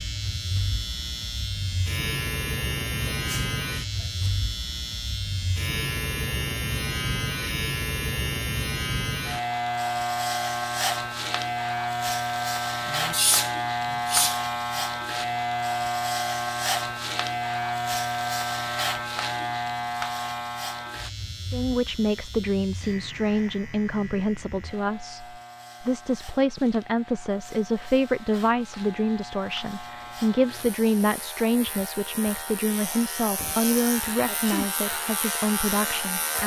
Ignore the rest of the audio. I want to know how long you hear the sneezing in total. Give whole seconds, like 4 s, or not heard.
3 s.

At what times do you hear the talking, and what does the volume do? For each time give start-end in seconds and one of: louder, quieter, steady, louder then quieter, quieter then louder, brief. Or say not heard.
21.5-36.4 steady.